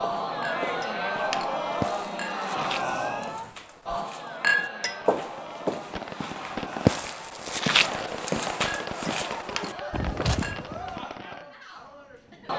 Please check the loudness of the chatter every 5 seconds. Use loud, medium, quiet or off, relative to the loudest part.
loud, medium, medium.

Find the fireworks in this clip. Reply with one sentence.
You can hear the fireworks from 5.2 to 11.4 s.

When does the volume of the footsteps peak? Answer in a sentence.
The loudest moment of the footsteps is at 7 seconds.